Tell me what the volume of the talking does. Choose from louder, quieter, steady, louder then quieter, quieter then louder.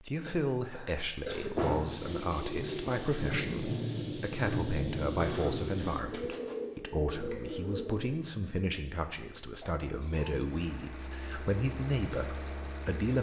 steady.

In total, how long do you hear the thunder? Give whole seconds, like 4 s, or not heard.
4 s.